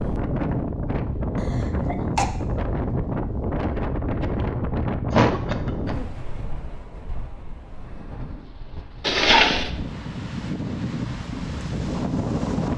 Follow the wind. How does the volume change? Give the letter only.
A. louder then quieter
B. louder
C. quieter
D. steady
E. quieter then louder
E.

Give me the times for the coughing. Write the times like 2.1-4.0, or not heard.
1.4-2.3, 5.1-6.0, 9.0-9.7.